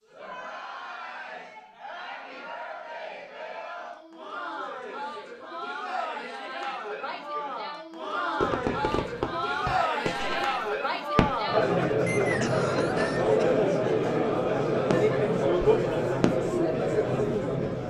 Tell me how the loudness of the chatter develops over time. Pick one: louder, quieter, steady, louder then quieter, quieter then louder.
louder.